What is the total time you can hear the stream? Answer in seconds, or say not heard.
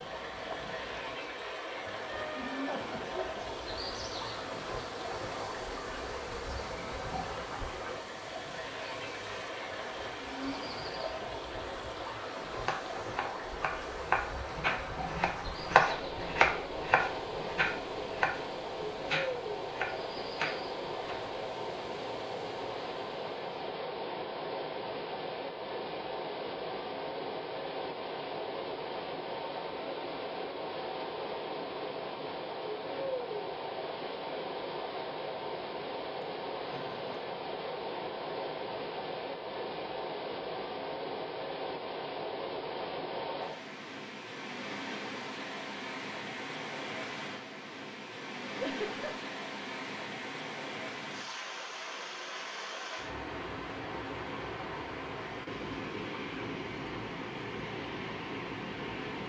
59 s.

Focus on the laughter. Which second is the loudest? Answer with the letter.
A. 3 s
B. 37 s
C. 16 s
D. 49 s
D.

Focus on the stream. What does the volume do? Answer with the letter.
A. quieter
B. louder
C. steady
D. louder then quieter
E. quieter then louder
C.